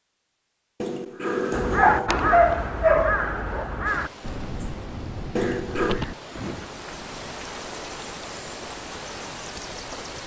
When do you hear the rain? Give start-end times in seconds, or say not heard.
3.9-10.2.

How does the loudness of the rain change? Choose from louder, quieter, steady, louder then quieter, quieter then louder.
louder.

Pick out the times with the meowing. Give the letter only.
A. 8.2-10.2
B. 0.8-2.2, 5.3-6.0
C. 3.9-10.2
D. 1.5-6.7
B.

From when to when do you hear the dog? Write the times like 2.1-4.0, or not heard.
1.7-3.6.